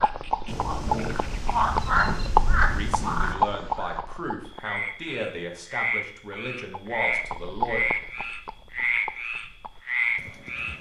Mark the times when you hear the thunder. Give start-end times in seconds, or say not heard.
0.5-3.4.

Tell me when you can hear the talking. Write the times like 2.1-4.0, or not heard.
2.5-7.8.